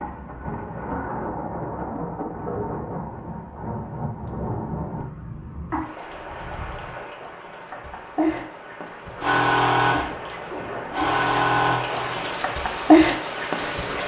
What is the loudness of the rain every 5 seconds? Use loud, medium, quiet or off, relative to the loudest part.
medium, medium, loud.